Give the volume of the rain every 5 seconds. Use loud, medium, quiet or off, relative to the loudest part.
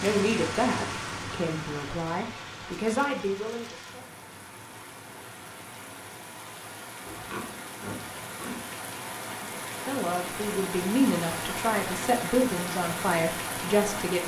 medium, medium, loud.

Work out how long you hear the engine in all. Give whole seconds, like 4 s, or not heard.
6 s.